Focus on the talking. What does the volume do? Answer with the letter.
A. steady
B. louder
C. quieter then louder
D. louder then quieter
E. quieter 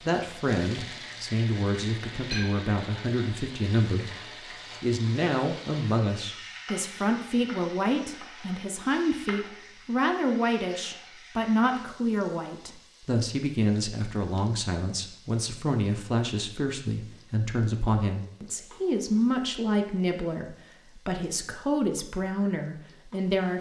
A.